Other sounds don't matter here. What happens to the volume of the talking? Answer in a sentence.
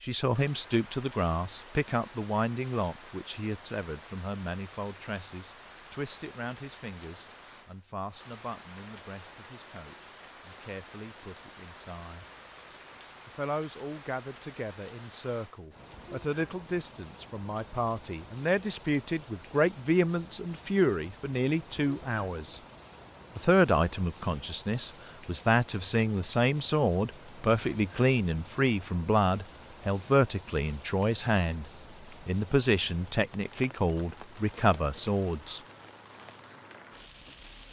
The volume of the talking goes down, then up.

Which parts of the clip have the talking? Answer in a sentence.
You can hear the talking from 0.0 to 12.2 s, from 13.2 to 22.6 s, from 23.4 to 31.6 s and from 32.2 to 35.6 s.